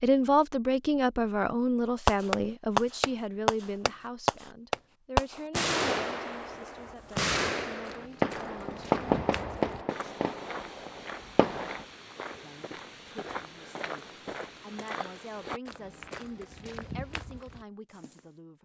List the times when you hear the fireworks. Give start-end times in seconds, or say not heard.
2.0-11.8.